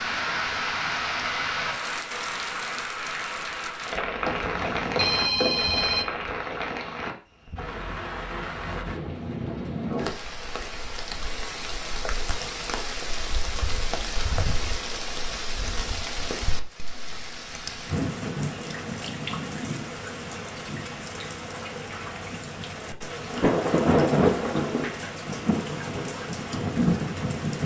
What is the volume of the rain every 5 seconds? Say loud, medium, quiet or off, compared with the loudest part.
loud, medium, medium, medium, loud, loud.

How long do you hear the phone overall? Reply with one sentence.
The phone can be heard for 2 seconds in total.